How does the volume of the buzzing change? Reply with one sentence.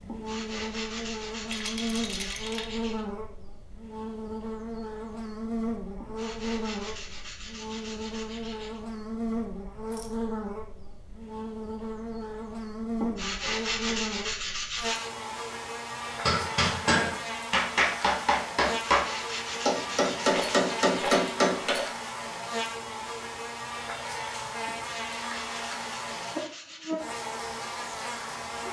The loudness of the buzzing stays about the same.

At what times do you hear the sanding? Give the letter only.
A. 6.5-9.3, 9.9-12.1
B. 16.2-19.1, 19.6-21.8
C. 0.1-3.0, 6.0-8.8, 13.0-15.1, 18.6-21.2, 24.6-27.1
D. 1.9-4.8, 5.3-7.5
C.